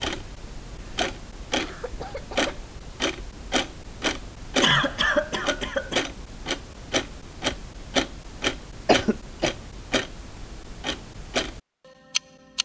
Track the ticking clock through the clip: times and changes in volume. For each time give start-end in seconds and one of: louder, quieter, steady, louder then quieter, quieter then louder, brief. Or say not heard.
0.0-12.5 steady.